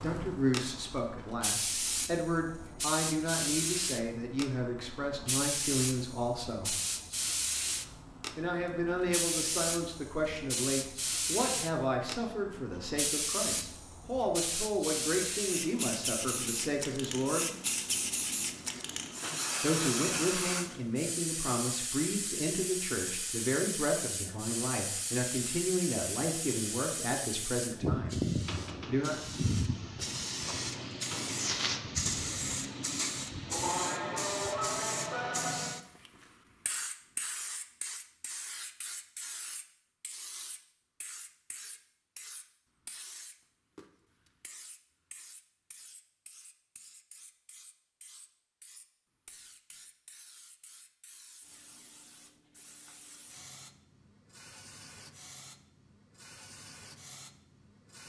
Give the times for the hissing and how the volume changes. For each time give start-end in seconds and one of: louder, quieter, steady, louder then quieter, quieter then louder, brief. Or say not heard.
0.0-58.0 quieter.